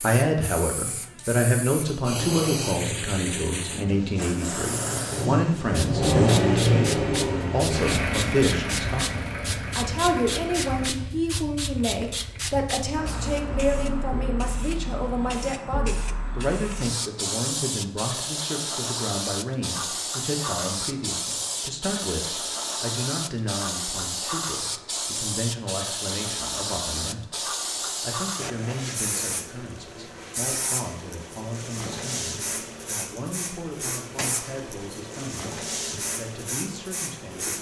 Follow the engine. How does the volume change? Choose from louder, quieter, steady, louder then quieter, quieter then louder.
louder then quieter.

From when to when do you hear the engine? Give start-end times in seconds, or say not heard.
2.0-11.1.